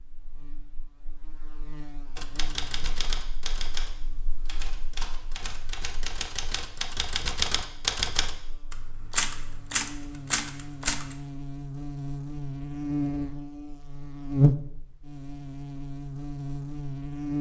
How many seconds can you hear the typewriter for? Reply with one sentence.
You can hear the typewriter for 9 seconds altogether.